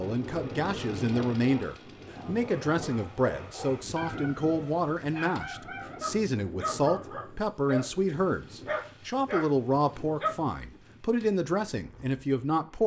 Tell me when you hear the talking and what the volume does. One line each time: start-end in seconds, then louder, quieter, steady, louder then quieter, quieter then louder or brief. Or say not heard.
0.0-12.8 steady.